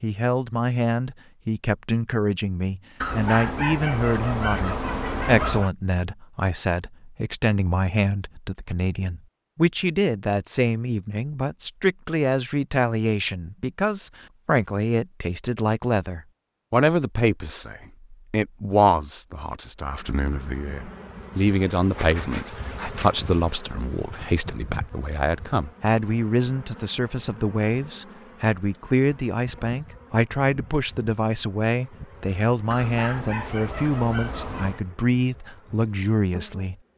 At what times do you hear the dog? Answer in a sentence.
The dog can be heard from 3.0 to 5.7 s and from 32.7 to 34.8 s.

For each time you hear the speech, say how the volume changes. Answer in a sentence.
The speech can be heard from 0.0 to 36.9 s, at a steady volume.